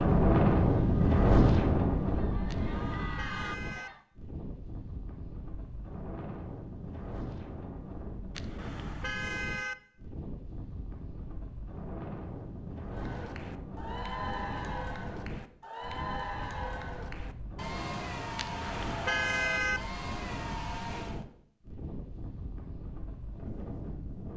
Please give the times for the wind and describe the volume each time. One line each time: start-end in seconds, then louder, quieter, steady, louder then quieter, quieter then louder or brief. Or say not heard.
0.0-24.3 quieter.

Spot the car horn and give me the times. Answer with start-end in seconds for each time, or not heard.
2.5-3.9, 8.3-9.8, 18.4-19.8.